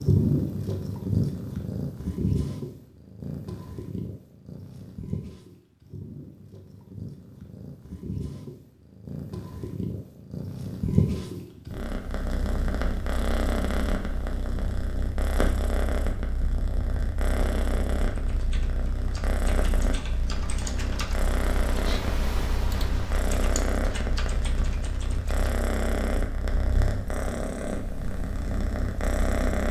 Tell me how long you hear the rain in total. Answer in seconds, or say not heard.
not heard.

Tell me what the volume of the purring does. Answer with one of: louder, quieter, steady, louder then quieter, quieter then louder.
steady.